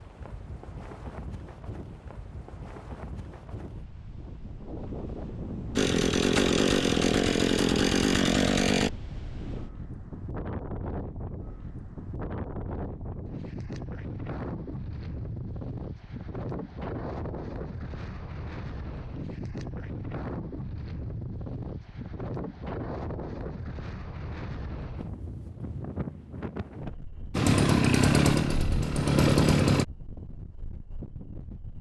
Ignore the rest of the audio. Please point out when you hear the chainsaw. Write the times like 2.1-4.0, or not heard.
5.8-8.9, 27.3-29.9.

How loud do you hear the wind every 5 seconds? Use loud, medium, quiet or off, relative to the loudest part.
medium, loud, loud, loud, loud, loud, medium.